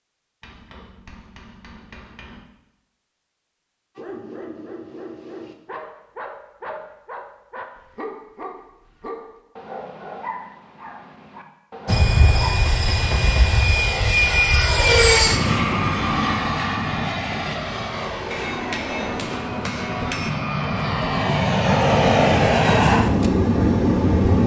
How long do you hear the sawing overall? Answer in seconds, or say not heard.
not heard.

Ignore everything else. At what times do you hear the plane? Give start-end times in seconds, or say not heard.
11.8-24.4.